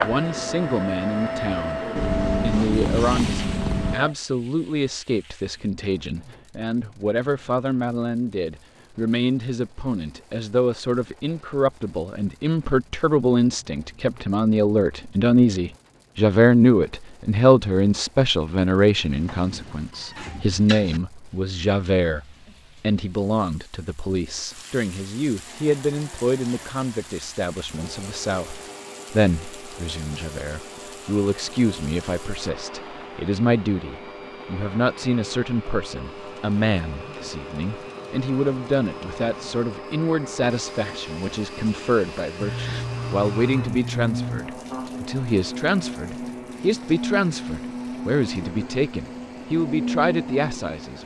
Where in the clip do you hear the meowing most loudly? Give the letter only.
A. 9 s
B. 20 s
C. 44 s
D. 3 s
D.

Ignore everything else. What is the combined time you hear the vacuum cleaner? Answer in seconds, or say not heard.
30 s.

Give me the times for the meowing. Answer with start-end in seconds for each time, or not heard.
1.9-4.0, 19.1-21.0, 42.4-44.4.